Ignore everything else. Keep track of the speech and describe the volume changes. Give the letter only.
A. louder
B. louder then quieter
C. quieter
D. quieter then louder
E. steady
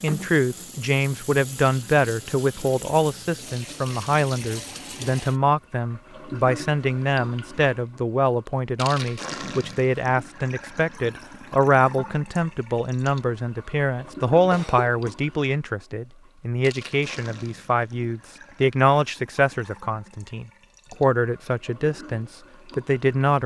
E.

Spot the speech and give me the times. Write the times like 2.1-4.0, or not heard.
0.0-23.4.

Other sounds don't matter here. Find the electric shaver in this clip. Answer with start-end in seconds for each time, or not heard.
not heard.